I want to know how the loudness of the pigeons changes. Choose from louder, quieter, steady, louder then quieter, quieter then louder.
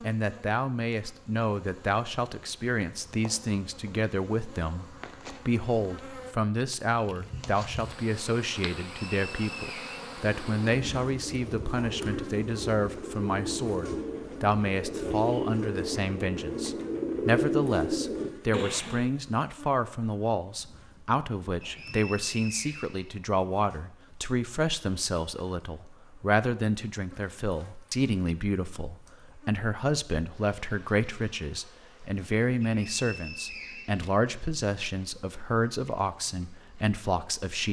louder.